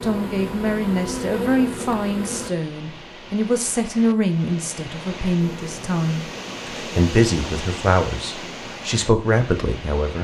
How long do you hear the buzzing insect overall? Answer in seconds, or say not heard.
4 s.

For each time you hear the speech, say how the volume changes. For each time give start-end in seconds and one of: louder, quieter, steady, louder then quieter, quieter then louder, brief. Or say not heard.
0.0-10.2 steady.